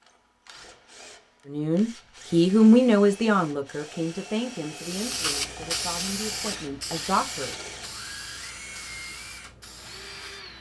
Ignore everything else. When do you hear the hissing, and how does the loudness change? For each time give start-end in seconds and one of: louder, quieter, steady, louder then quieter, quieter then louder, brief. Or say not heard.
4.7-10.5 quieter.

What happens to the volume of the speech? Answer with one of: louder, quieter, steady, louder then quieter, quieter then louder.
quieter.